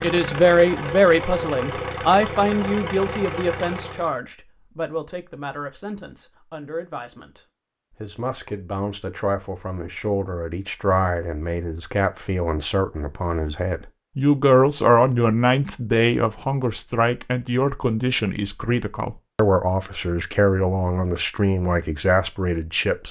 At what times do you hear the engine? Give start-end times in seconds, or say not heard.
0.0-4.2.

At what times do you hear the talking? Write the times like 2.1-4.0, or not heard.
0.0-23.0.